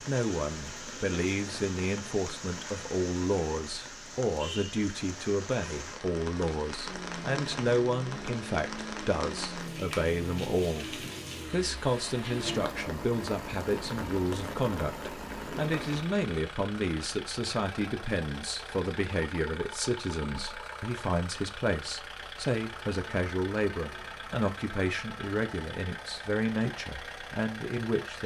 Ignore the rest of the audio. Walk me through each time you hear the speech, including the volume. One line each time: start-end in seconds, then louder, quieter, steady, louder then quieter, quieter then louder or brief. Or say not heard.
0.1-28.2 steady.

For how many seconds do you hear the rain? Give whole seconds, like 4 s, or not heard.
16 s.